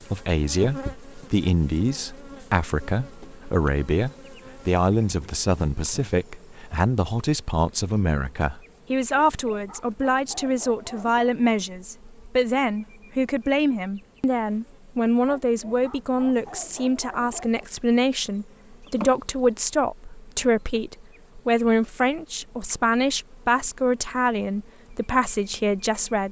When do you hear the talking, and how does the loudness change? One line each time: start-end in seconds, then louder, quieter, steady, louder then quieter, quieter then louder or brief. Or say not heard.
0.1-26.2 steady.